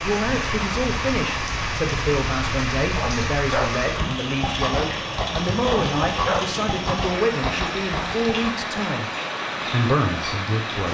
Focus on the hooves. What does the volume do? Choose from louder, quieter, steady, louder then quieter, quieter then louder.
steady.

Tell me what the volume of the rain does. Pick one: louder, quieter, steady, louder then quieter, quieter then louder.
steady.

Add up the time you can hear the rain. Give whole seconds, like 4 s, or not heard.
11 s.